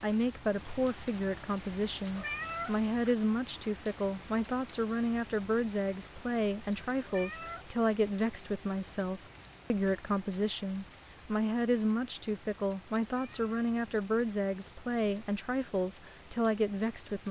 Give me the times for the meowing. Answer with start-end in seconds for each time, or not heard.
2.1-2.8, 7.0-7.7, 13.1-13.5.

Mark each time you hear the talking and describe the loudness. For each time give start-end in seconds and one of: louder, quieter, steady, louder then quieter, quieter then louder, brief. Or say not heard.
0.0-17.2 steady.